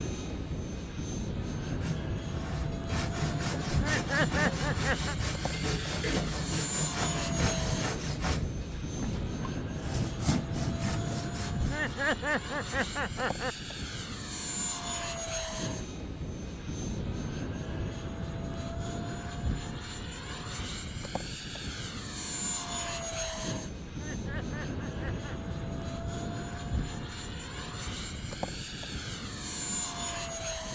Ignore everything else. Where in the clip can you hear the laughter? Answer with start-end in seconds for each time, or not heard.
3.6-5.2, 11.6-13.6, 23.9-25.4.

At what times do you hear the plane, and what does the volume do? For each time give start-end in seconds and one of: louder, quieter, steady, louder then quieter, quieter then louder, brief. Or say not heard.
0.0-30.7 steady.